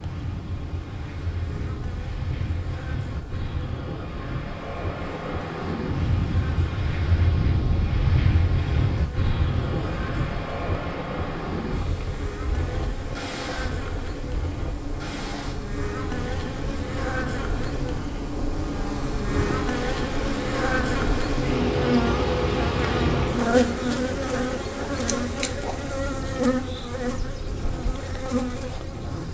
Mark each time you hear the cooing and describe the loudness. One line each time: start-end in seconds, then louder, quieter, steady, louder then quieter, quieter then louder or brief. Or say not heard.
not heard.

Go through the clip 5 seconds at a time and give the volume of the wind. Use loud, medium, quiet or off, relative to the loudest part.
medium, loud, medium, medium, medium, medium.